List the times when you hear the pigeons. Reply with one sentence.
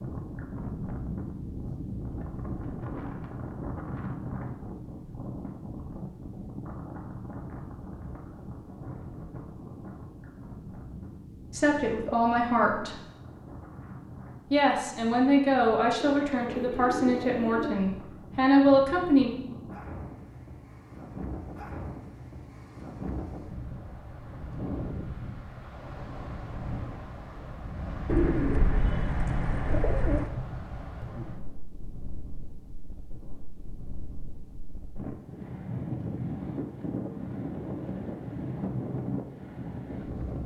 The pigeons can be heard from 16.0 to 17.8 s and from 28.1 to 30.3 s.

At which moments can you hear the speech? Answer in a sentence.
The speech can be heard from 11.5 to 12.9 s and from 14.5 to 19.3 s.